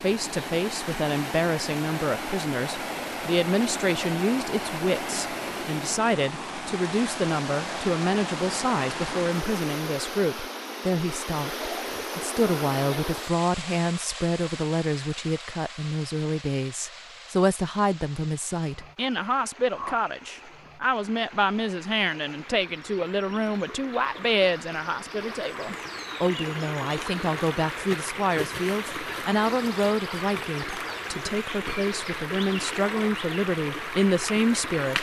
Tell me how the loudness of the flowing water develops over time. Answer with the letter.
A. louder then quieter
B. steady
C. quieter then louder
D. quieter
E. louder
C.